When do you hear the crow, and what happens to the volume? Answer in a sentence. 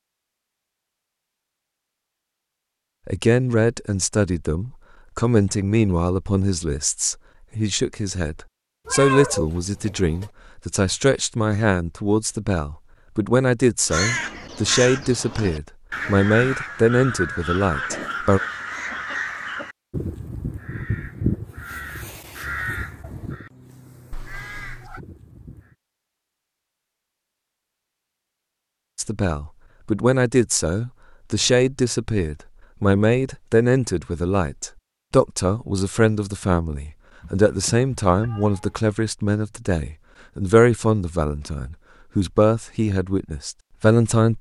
You can hear the crow from 13.8 to 25.8 s, getting quieter.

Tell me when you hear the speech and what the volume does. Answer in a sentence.
The speech can be heard from 3.0 to 18.4 s, at a steady volume; and from 28.9 to 44.3 s, at a steady volume.